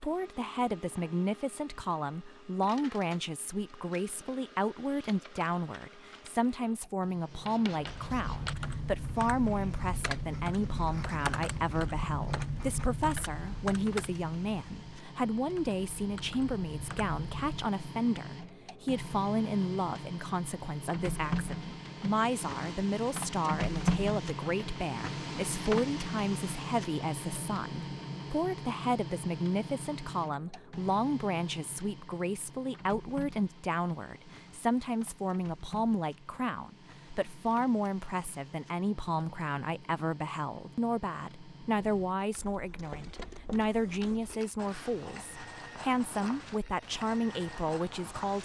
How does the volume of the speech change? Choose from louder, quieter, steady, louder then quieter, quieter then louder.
steady.